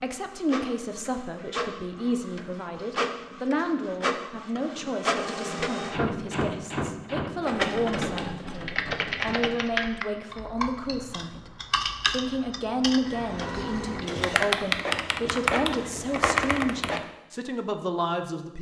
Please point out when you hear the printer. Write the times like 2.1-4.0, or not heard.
0.0-9.4, 13.0-17.0.